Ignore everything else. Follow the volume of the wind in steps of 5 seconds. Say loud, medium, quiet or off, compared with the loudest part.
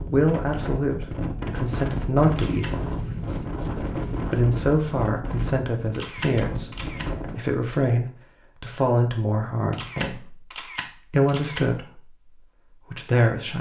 loud, loud, off.